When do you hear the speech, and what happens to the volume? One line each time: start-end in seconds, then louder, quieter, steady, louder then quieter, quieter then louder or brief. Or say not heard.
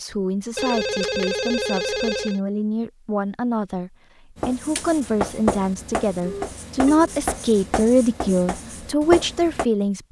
0.0-10.0 louder.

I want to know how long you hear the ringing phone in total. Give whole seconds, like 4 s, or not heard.
3 s.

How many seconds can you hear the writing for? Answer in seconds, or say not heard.
5 s.